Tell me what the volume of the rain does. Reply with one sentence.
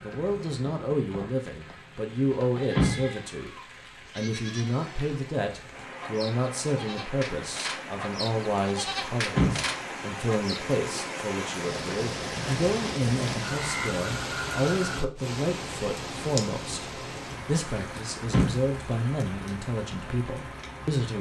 The loudness of the rain goes up, then down.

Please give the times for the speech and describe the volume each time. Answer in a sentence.
The speech can be heard from 0.0 to 21.1 s, at a steady volume.